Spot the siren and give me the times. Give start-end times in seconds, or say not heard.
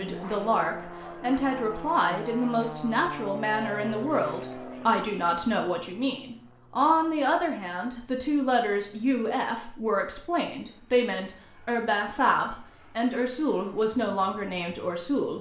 not heard.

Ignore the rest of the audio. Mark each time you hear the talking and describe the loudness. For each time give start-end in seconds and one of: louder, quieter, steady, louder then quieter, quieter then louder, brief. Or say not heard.
0.0-15.3 steady.